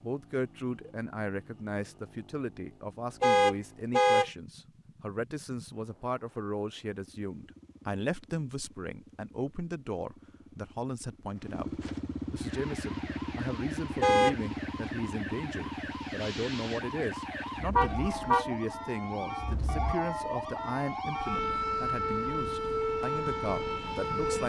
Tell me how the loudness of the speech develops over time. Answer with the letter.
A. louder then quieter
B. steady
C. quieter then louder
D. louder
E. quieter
B.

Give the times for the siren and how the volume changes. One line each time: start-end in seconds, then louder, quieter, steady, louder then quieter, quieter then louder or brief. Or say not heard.
12.3-24.4 louder.